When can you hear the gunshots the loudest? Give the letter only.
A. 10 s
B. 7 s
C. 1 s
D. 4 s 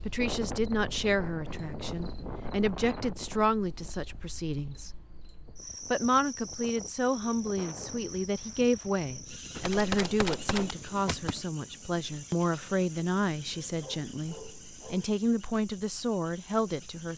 A.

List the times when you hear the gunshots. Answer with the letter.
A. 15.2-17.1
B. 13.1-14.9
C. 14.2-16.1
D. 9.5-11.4
D.